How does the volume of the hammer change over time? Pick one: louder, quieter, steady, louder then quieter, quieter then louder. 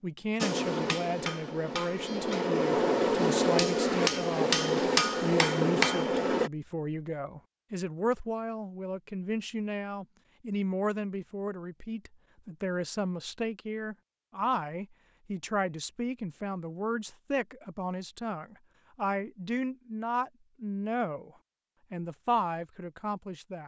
louder.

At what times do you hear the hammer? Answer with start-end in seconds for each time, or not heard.
0.4-6.5.